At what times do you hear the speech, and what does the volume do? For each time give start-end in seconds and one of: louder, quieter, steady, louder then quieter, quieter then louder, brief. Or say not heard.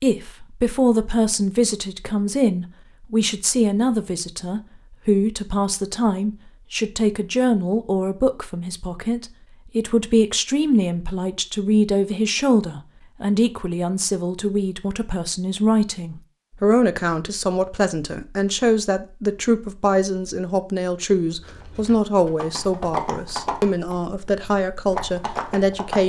0.0-26.0 steady.